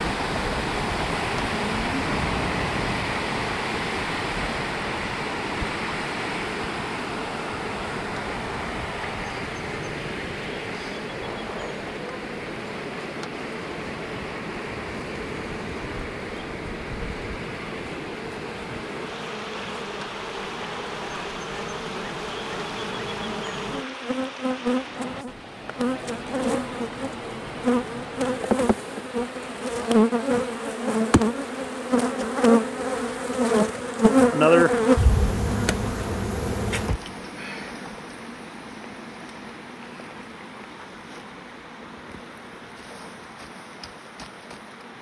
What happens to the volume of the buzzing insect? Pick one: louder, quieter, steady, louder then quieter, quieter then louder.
louder then quieter.